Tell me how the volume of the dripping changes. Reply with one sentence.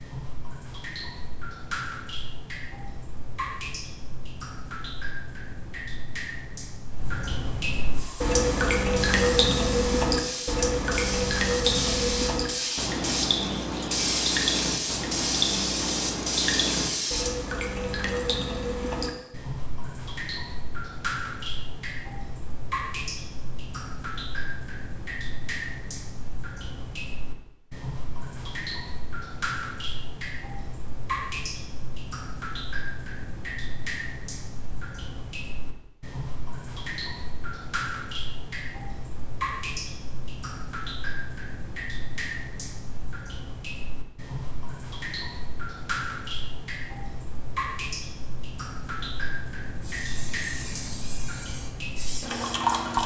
The loudness of the dripping goes down.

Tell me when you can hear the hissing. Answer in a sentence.
You can hear the hissing from 7.9 to 17.3 s and from 49.8 to 53.0 s.